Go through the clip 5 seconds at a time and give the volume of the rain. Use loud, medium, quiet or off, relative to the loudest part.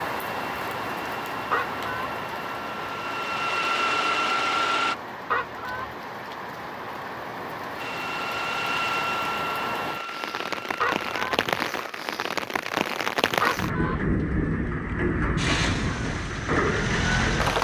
medium, medium, loud, loud.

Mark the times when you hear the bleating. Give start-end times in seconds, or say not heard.
not heard.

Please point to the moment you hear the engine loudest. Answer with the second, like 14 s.
4 s.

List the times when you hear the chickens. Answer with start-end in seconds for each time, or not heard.
1.5-2.1, 5.3-6.0, 10.8-11.4, 13.4-14.1.